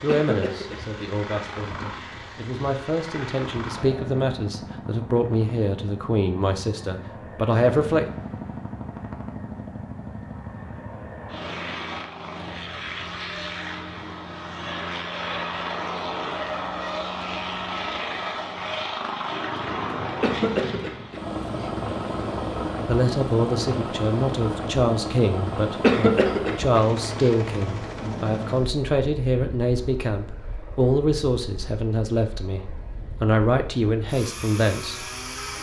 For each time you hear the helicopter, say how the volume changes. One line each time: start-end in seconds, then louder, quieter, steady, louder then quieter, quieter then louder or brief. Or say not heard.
0.0-35.5 louder then quieter.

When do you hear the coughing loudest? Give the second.
26 s.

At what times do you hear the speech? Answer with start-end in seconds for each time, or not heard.
0.0-8.1, 22.9-35.0.